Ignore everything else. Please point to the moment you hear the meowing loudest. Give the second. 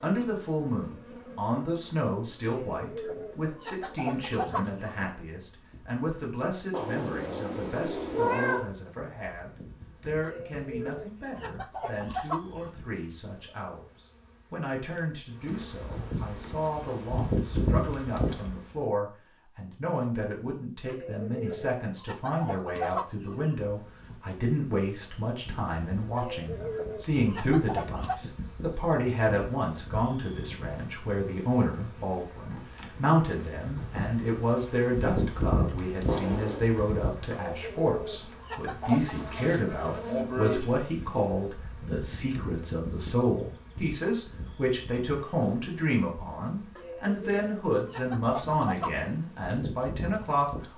8 s.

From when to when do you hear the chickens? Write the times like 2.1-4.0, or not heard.
2.5-5.0, 10.2-12.8, 20.9-23.6, 26.1-28.2, 37.3-39.2, 46.8-49.0.